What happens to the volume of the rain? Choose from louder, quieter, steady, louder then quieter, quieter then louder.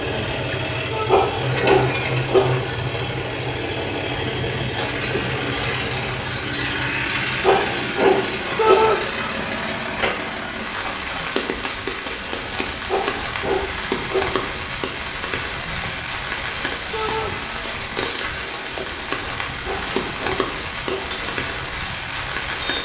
louder.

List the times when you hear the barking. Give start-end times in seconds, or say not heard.
1.1-2.7, 7.4-8.9, 12.8-14.4, 19.6-21.2.